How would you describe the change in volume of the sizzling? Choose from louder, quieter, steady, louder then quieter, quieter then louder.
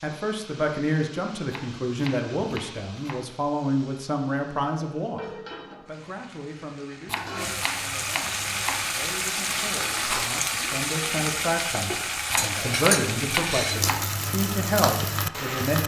louder.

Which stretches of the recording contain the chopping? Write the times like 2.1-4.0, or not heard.
1.5-3.2, 7.0-8.8, 12.3-14.1.